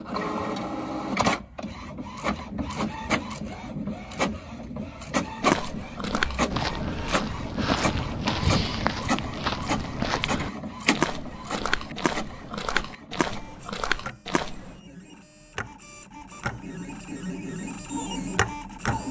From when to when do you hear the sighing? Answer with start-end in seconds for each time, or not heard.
not heard.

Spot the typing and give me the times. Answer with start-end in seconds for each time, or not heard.
not heard.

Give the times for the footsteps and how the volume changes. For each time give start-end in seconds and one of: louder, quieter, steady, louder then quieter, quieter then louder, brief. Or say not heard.
5.4-14.8 steady.